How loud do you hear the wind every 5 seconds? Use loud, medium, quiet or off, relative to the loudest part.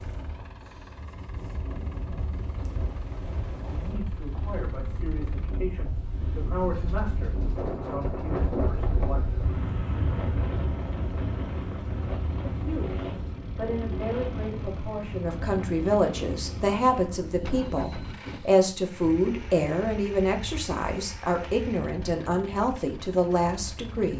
medium, loud, loud, medium, quiet.